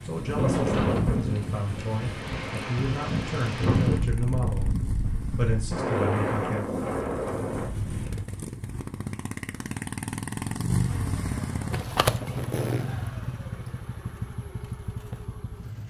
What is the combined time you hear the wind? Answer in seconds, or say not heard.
8 s.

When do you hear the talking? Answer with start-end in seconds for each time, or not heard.
0.0-6.7.